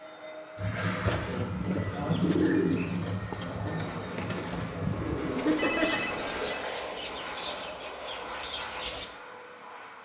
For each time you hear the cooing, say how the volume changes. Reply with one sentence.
You can hear the cooing from 0.6 to 9.1 s, getting quieter then louder.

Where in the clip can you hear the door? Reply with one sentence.
The door can't be heard in this clip.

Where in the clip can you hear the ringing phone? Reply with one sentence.
You can hear the ringing phone from 2.1 to 3.1 s and from 5.3 to 6.7 s.